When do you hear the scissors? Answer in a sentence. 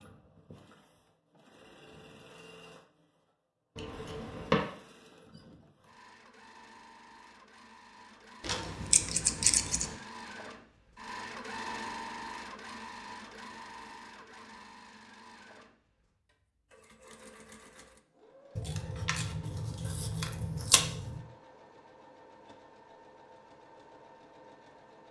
The scissors can be heard from 3.8 to 4.7 s, from 8.4 to 9.9 s and from 18.6 to 21.2 s.